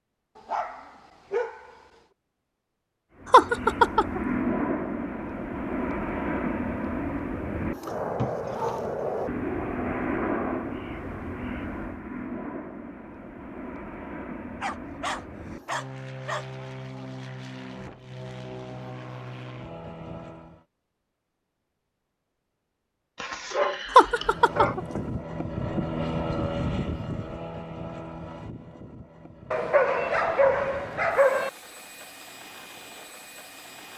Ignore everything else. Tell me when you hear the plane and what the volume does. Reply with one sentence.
The plane can be heard from 3.1 to 20.6 s, getting quieter; and from 24.1 to 33.9 s, getting quieter.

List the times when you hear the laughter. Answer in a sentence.
You can hear the laughter from 3.3 to 4.2 s and from 23.9 to 25.0 s.